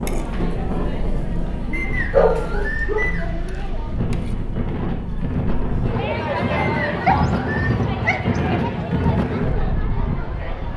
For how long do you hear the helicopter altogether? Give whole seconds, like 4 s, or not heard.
not heard.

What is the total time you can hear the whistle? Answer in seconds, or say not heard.
3 s.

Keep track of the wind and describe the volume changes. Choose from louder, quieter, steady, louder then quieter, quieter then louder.
louder.